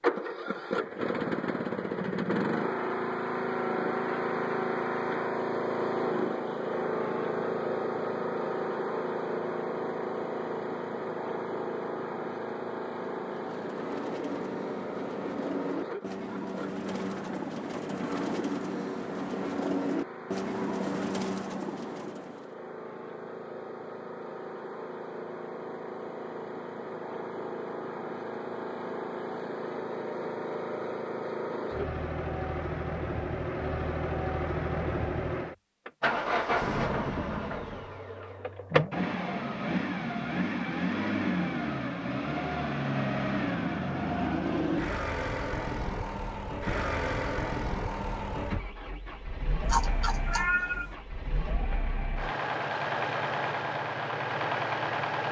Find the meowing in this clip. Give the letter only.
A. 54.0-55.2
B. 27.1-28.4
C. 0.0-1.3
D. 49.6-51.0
D.